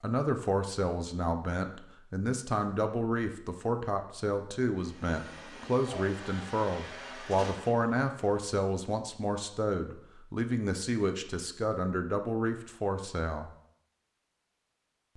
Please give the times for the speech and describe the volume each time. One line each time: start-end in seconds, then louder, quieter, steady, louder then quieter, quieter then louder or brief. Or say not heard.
0.0-13.5 steady.